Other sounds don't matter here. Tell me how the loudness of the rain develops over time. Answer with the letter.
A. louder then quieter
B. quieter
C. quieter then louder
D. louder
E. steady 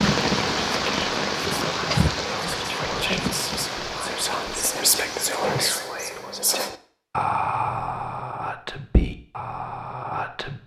B.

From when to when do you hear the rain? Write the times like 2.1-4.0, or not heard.
0.0-5.7.